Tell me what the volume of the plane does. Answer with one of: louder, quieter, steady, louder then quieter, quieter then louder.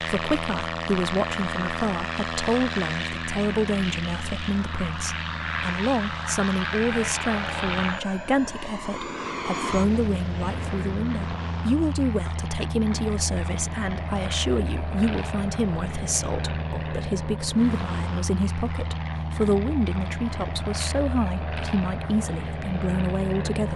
steady.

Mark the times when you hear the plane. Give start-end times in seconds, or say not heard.
0.0-23.7.